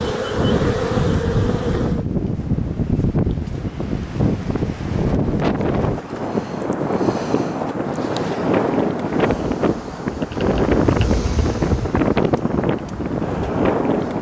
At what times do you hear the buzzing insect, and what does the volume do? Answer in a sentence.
The buzzing insect can be heard briefly from 0.0 to 2.0 s; and from 7.8 to 14.1 s, getting louder then quieter.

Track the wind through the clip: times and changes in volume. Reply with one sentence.
The wind can be heard from 0.0 to 14.1 s, at a steady volume.